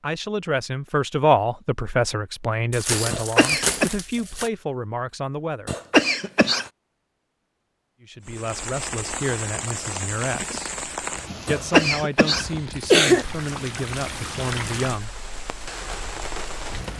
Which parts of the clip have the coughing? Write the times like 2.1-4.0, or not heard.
3.1-3.9, 5.7-6.7, 11.4-13.2.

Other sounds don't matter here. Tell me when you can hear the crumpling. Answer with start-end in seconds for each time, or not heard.
2.7-4.5.